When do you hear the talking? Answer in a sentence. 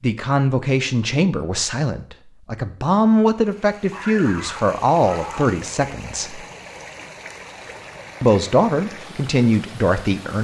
You can hear the talking from 0.0 to 6.5 s and from 8.2 to 10.4 s.